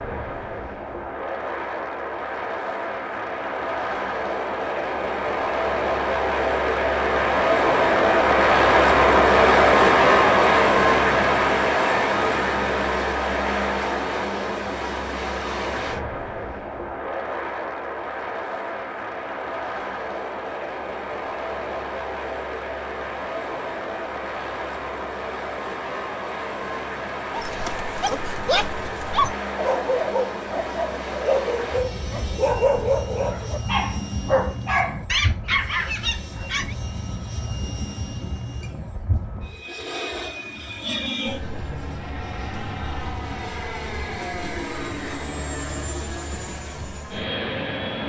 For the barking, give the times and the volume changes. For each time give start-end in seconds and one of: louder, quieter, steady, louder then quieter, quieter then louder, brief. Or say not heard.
27.3-36.8 steady.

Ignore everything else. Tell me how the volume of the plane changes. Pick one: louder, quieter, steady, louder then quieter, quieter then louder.
quieter.